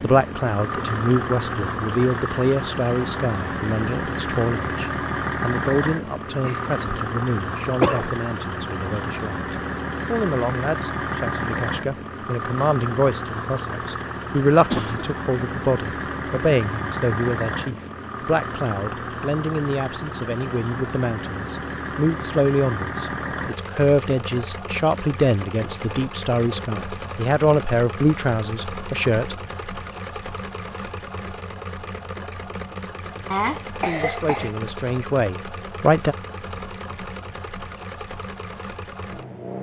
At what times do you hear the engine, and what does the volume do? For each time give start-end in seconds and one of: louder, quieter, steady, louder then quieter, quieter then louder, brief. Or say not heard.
0.0-39.5 quieter.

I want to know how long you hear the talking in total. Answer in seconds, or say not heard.
32 s.